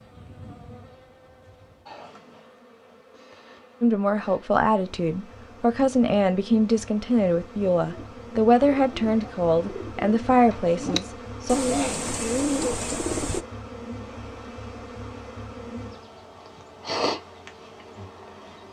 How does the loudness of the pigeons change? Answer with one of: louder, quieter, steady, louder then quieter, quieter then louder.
louder.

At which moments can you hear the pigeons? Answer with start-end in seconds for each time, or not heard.
7.8-13.4.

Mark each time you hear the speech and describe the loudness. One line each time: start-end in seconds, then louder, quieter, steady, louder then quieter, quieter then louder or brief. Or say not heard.
3.8-11.6 steady.